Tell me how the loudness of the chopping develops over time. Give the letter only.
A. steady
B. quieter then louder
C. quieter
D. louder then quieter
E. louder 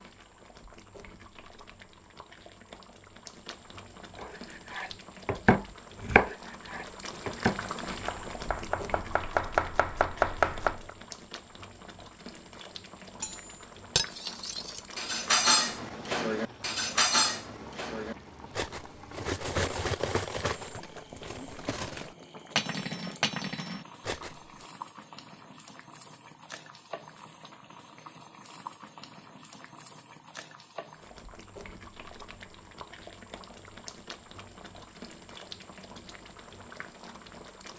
B.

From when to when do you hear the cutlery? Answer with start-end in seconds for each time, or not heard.
13.2-24.6.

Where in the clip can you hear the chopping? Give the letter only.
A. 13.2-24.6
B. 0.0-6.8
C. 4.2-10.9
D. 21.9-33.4
C.